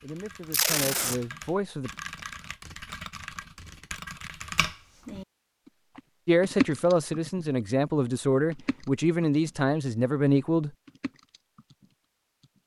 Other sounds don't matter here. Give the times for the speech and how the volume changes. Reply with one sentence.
The speech can be heard briefly from 0.0 to 1.9 s; and from 6.2 to 10.7 s, at a steady volume.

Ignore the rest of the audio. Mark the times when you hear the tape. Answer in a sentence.
The tape can be heard from 0.5 to 1.1 s.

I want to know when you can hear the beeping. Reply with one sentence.
The beeping can't be heard in this clip.